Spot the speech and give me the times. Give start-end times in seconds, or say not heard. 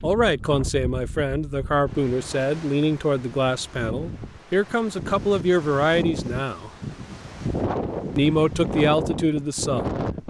0.0-6.7, 8.2-10.0.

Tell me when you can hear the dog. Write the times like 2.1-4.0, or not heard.
not heard.